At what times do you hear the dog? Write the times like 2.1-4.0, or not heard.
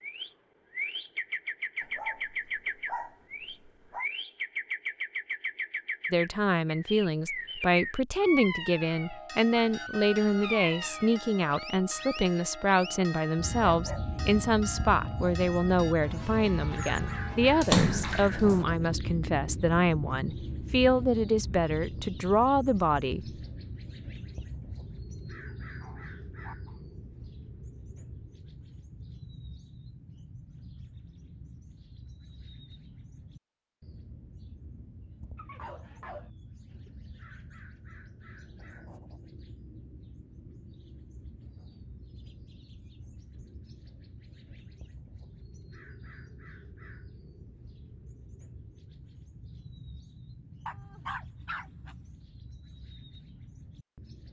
1.8-4.0, 13.7-14.2, 25.5-26.8, 35.4-36.3, 50.6-52.0.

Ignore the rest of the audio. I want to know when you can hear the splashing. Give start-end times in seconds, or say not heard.
17.6-18.6.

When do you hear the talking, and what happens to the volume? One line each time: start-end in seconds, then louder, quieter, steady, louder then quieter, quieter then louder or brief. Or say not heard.
6.1-23.2 steady.